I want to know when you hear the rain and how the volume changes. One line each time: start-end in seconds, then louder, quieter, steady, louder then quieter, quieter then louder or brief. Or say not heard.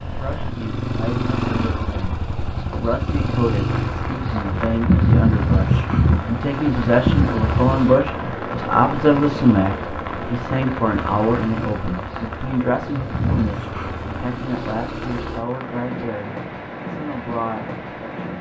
3.6-18.3 quieter.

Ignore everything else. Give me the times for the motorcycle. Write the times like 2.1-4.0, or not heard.
0.0-15.4.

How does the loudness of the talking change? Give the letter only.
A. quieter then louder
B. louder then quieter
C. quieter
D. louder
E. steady
B.